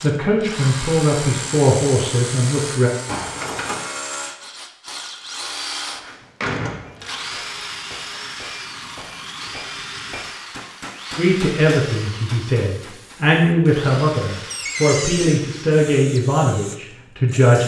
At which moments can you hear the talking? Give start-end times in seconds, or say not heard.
0.0-2.9, 11.2-17.6.